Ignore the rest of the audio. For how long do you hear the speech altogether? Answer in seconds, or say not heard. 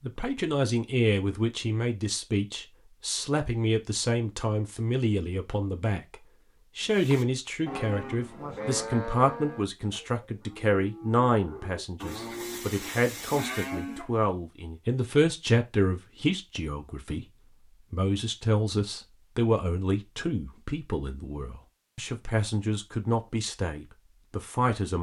25 s.